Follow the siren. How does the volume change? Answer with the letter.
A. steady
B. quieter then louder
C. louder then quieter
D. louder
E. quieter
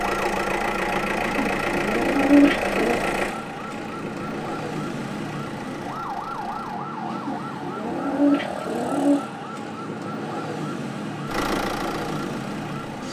A.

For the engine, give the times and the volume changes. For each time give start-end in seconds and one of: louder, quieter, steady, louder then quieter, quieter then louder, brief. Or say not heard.
0.0-6.8 quieter
11.2-13.0 brief.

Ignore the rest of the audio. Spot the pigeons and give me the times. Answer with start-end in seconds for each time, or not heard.
1.4-3.0, 7.2-9.2.